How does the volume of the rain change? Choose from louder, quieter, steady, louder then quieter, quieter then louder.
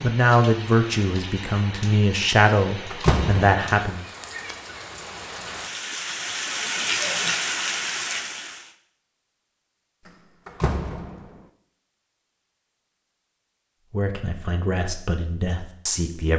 louder.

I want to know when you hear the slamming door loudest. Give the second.
3 s.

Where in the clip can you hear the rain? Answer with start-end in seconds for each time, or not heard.
0.0-8.8.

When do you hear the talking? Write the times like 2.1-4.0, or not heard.
0.0-4.0, 13.9-16.3.